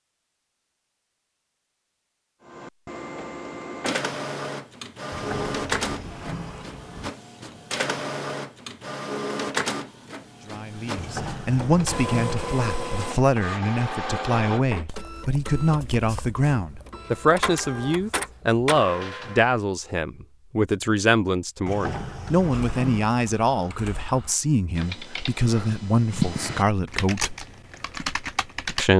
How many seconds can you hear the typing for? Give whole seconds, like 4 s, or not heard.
6 s.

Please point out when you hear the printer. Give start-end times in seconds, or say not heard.
2.5-19.6.